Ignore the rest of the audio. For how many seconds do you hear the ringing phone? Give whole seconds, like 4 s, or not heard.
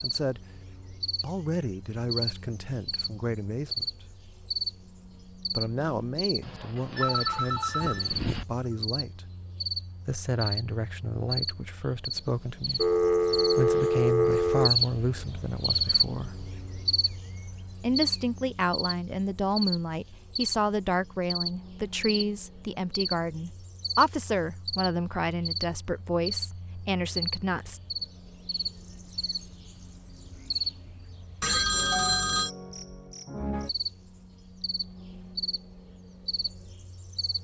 5 s.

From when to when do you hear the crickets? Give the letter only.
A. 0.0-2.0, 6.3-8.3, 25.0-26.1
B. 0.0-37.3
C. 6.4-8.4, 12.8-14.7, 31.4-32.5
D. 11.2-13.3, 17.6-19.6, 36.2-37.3
B.